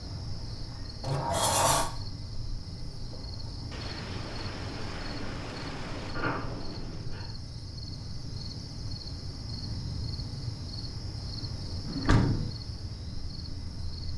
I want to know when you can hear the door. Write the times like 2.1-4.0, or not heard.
1.0-1.9, 6.1-7.3, 11.8-12.5.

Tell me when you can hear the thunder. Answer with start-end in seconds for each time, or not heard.
3.7-7.1.